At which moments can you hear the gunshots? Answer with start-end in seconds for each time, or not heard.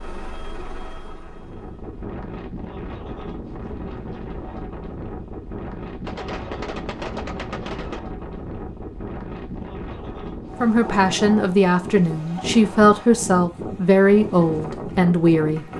6.0-8.0.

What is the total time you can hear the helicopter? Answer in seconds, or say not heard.
2 s.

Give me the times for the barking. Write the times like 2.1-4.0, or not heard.
not heard.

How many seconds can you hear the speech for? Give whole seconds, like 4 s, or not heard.
5 s.